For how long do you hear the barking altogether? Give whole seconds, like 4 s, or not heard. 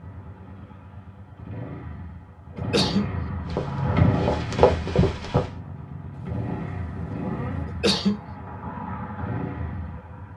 not heard.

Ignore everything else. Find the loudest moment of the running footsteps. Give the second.
5 s.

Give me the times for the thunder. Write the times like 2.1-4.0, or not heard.
6.2-7.7.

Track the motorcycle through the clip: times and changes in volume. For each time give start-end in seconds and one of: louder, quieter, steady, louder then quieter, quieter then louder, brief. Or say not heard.
0.0-10.3 louder then quieter.